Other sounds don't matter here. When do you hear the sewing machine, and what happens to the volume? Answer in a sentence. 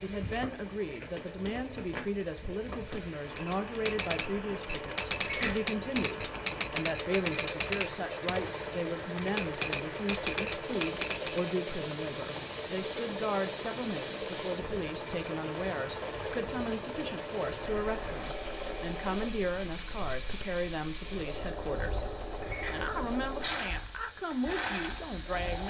The sewing machine can be heard from 0.0 to 25.6 s, getting louder.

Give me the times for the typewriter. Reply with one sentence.
You can hear the typewriter from 3.2 to 11.6 s.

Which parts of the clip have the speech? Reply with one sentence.
You can hear the speech from 0.0 to 25.6 s.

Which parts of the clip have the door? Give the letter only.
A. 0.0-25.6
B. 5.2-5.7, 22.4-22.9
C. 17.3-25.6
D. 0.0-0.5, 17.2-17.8
B.